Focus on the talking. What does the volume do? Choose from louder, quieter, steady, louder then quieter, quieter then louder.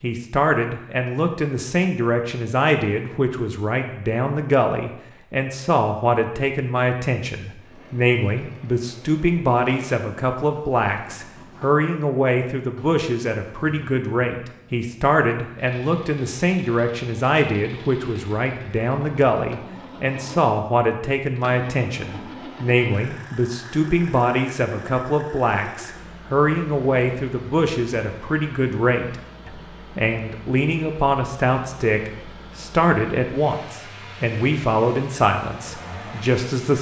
steady.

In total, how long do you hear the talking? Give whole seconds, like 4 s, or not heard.
37 s.